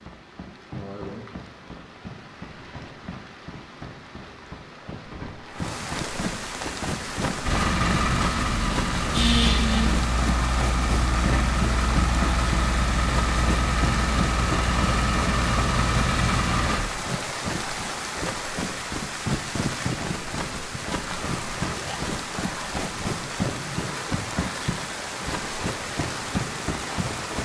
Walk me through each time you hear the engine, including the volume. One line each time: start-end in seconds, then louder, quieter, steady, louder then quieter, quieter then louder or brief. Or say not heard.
7.5-16.8 steady.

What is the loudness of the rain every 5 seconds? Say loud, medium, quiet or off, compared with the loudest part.
medium, loud, loud, loud, loud, loud.